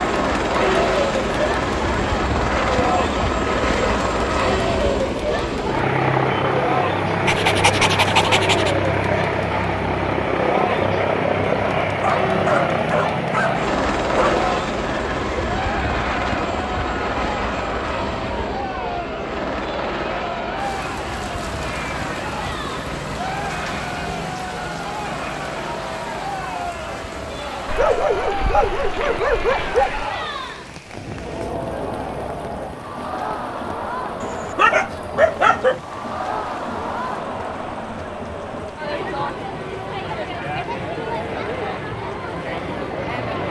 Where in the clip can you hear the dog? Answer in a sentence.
The dog can be heard from 7.2 to 8.8 s, from 11.9 to 14.4 s, from 27.6 to 30.1 s and from 34.2 to 35.8 s.